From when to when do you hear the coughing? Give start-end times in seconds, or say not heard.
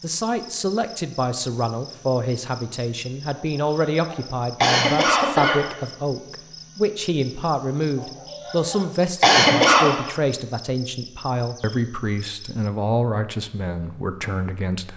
3.4-5.6, 8.0-9.9.